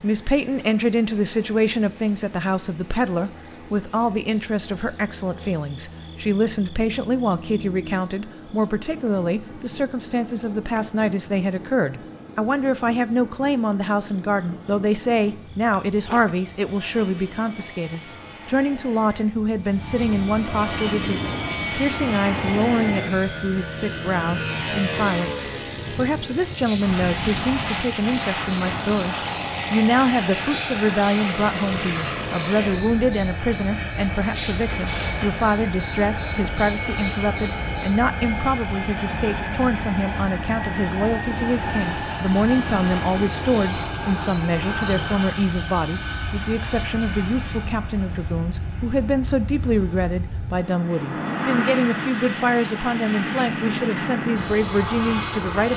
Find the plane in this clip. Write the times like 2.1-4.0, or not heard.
0.0-55.7.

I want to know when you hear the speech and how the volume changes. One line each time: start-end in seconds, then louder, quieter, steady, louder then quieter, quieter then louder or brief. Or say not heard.
0.0-55.7 steady.